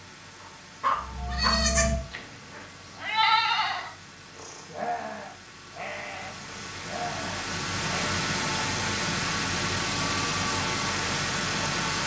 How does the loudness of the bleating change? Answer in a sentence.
The volume of the bleating goes down.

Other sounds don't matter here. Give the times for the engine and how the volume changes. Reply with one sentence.
The engine can be heard from 0.0 to 12.0 s, getting louder.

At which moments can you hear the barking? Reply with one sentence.
You can hear the barking from 0.4 to 1.6 s.